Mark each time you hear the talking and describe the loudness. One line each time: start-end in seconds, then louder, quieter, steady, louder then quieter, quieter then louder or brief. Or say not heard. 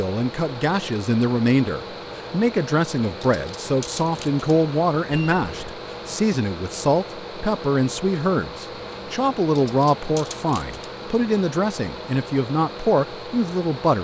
0.0-13.9 steady.